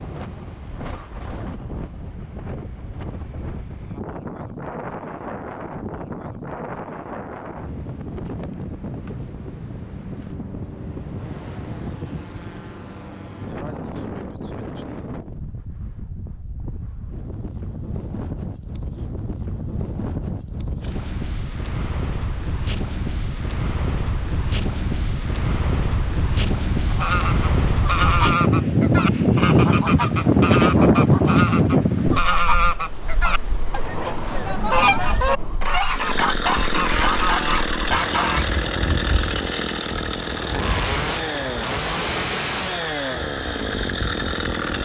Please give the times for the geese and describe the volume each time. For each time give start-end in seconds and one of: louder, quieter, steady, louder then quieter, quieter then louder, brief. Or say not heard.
26.9-38.5 steady.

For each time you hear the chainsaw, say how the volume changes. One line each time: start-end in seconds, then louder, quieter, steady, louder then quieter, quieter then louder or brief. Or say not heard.
35.9-44.7 steady.